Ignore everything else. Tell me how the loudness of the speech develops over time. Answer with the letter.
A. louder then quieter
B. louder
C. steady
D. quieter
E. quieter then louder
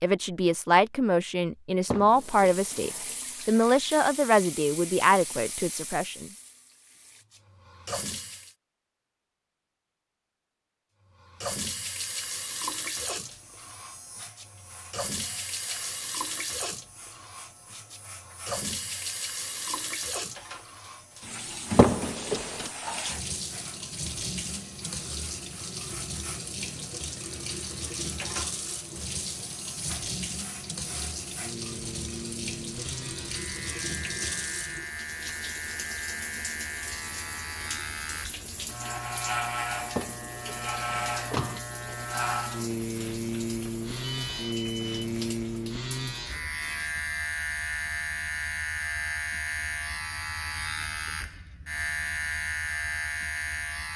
C.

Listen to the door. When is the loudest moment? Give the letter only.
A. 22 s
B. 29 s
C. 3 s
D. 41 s
A.